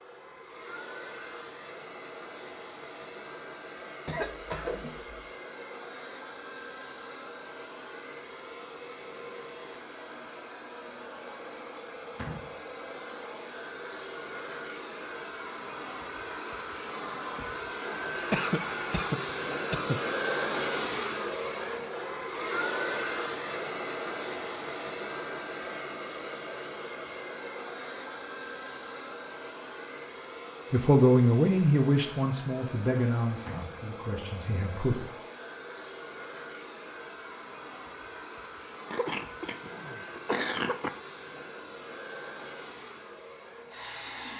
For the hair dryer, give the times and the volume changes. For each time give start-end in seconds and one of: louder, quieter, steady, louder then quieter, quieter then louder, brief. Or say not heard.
0.0-44.3 louder then quieter.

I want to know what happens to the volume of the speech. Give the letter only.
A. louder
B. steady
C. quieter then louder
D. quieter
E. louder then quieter
D.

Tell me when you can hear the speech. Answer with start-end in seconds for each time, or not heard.
30.7-35.0.